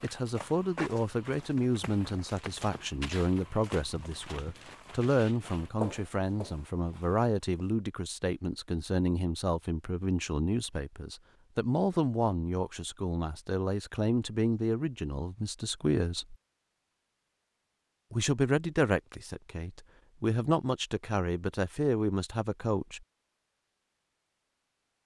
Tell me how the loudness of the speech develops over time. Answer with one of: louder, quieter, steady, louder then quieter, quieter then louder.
steady.